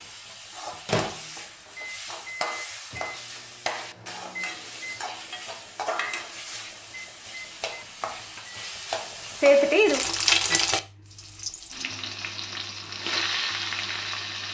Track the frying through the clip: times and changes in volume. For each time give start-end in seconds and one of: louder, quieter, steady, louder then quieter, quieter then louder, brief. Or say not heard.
0.0-14.4 louder then quieter.